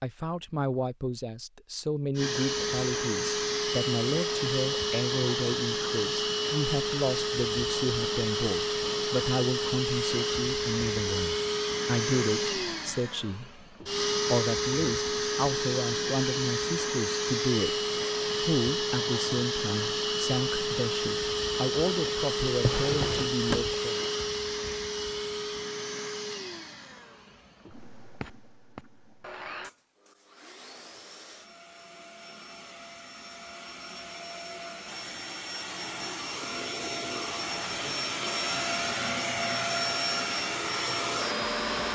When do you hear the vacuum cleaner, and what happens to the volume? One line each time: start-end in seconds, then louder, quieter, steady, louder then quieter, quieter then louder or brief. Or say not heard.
2.1-41.9 quieter then louder.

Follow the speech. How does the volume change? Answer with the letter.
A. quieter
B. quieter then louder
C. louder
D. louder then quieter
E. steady
E.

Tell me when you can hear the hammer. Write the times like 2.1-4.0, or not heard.
not heard.